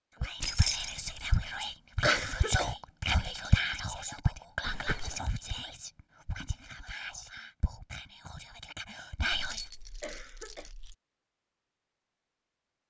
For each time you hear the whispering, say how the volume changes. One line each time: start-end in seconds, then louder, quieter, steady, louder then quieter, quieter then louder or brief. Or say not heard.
0.2-9.7 quieter.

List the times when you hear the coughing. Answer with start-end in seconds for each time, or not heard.
2.0-2.8, 4.6-5.2, 10.0-10.7.